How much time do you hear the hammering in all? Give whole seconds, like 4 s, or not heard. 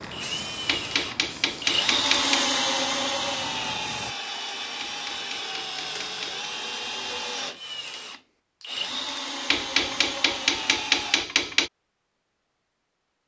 6 s.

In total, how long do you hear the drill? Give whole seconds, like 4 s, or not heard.
11 s.